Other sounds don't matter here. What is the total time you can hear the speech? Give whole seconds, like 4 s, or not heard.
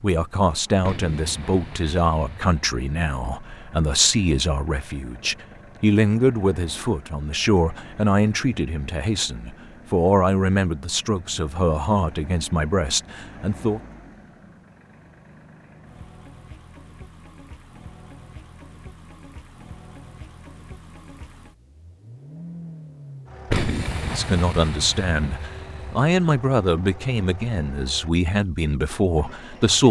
20 s.